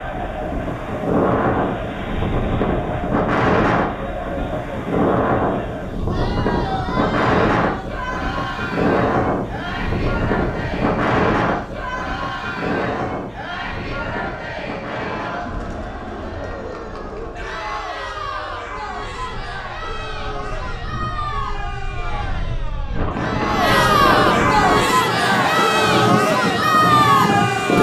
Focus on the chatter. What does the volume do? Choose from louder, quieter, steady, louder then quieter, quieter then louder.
louder.